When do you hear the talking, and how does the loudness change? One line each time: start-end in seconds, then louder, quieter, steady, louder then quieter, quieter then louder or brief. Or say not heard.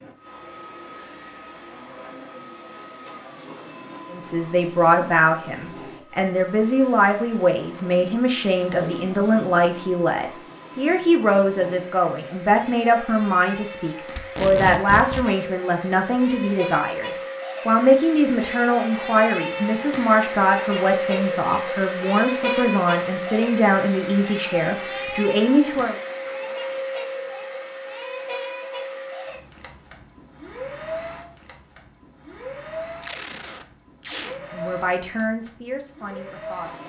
4.1-25.9 steady
34.4-36.8 brief.